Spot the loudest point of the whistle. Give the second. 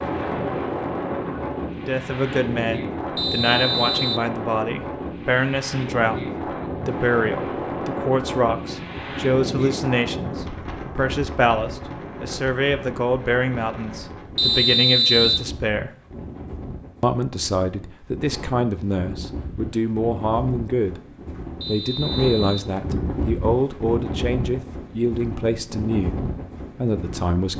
15 s.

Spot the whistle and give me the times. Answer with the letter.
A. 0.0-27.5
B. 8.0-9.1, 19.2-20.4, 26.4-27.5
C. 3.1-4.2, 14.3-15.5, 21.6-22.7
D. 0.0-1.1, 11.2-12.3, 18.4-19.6
C.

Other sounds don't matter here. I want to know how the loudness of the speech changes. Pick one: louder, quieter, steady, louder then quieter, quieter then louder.
steady.